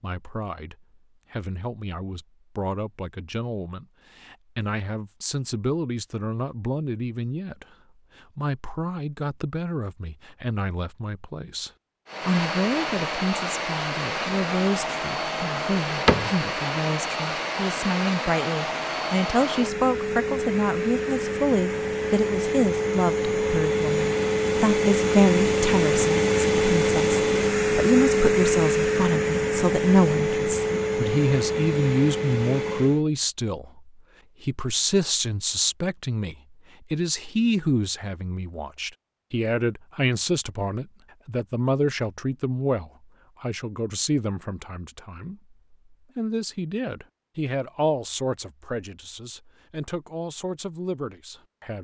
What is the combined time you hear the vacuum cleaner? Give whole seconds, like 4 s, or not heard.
21 s.